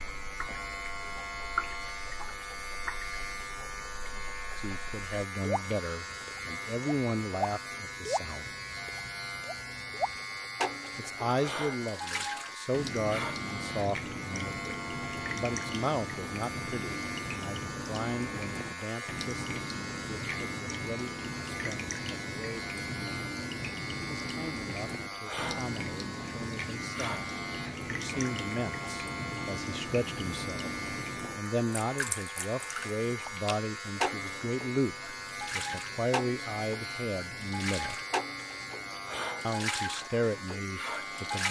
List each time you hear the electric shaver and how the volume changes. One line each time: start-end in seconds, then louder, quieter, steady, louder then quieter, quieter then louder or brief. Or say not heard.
0.0-41.4 steady.